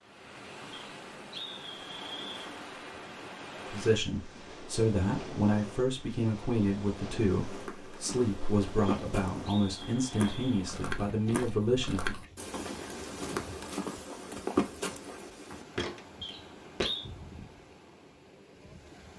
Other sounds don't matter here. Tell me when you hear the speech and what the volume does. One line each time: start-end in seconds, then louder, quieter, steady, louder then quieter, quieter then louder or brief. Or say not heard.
3.7-12.2 steady.